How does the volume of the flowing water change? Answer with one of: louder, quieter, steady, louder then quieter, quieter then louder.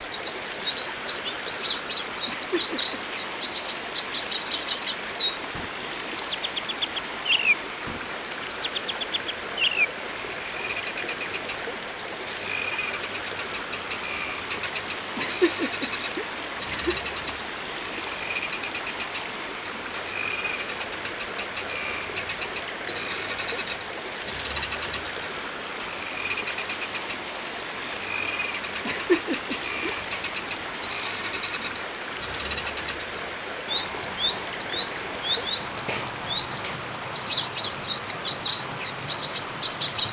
steady.